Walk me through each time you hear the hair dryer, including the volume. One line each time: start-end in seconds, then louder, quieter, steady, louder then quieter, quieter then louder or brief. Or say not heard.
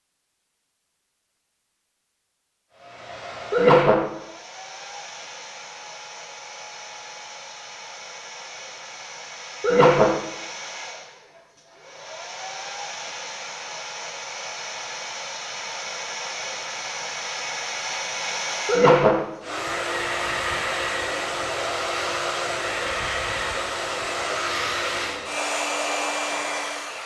2.7-27.0 louder.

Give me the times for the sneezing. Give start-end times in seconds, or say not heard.
3.5-4.0, 9.6-10.2, 18.6-19.2.